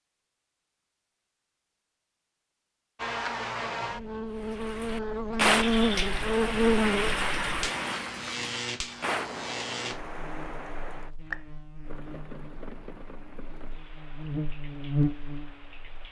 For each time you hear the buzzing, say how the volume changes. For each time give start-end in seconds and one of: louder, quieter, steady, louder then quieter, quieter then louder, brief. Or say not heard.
3.0-16.0 quieter then louder.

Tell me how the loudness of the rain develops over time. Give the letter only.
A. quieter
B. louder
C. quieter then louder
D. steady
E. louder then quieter
A.